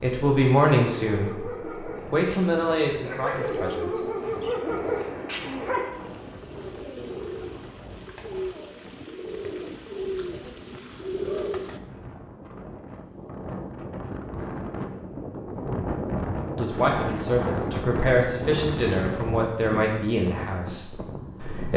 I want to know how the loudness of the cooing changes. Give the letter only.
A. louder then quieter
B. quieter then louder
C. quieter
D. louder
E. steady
D.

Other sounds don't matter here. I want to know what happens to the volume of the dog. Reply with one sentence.
The volume of the dog goes down, then up.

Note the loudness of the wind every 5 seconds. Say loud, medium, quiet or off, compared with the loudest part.
quiet, quiet, medium, loud, medium.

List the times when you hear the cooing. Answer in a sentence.
The cooing can be heard from 3.4 to 11.8 s.